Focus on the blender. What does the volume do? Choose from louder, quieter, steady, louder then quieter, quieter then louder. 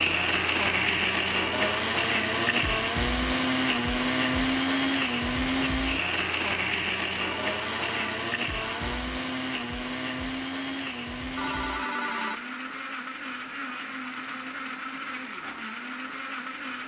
quieter.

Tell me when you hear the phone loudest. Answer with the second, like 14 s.
12 s.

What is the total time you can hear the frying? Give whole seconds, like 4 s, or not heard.
not heard.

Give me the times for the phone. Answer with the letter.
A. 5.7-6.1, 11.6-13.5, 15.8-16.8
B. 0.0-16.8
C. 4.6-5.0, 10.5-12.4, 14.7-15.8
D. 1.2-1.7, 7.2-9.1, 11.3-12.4
D.